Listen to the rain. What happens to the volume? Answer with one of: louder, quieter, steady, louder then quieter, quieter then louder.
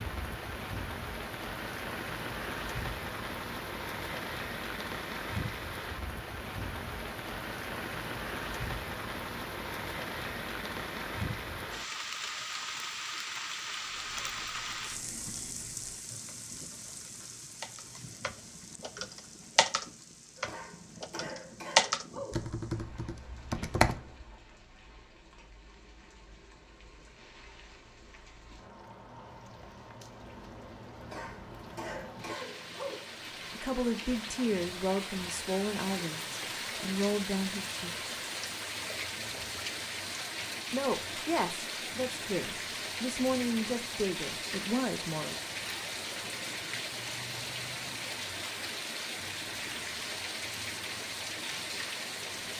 quieter then louder.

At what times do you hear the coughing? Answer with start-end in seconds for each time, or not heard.
20.4-22.4, 31.0-33.0.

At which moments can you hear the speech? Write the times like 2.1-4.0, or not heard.
33.5-38.0, 40.7-45.4.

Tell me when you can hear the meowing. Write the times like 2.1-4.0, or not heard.
not heard.